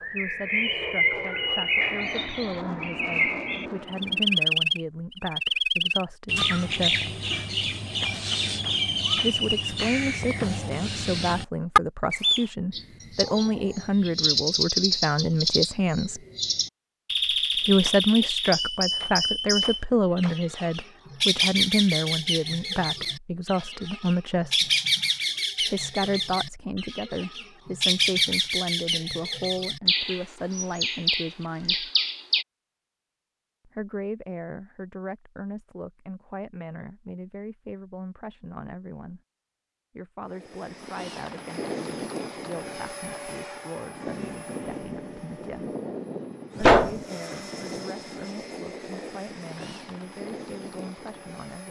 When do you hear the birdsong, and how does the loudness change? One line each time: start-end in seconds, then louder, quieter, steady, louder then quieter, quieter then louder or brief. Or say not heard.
0.0-32.5 steady.